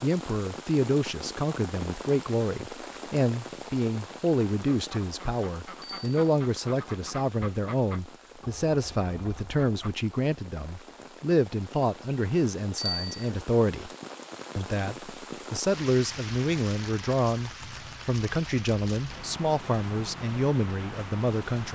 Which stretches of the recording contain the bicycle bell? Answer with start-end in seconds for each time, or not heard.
5.8-6.2, 12.8-13.2.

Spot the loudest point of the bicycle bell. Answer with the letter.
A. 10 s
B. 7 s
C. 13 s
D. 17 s
C.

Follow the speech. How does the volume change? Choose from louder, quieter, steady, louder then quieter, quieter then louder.
steady.